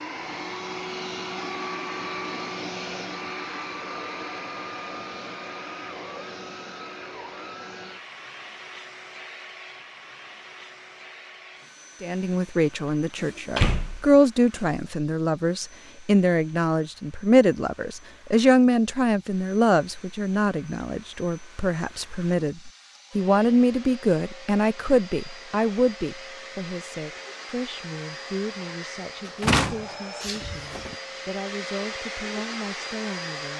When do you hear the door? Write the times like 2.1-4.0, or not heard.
13.2-14.8, 29.2-30.9.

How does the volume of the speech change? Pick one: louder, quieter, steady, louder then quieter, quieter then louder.
quieter.